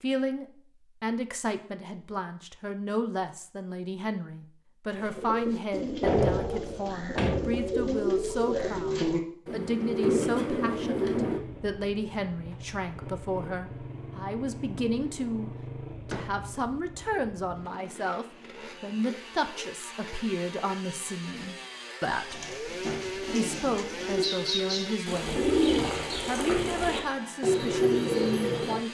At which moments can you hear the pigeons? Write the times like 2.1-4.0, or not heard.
4.9-11.4, 22.3-28.8.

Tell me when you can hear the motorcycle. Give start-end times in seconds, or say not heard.
11.2-28.8.